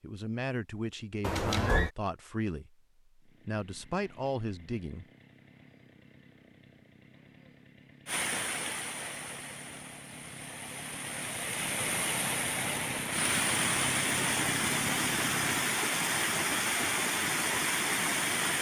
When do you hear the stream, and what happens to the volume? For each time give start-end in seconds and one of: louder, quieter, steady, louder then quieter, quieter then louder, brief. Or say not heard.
8.1-18.5 louder.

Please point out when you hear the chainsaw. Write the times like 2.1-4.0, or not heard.
3.2-15.7.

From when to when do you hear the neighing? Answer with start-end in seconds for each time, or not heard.
1.2-1.9.